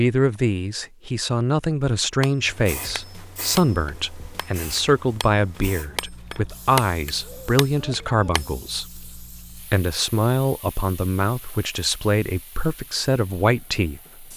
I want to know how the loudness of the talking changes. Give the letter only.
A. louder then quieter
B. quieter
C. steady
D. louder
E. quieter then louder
C.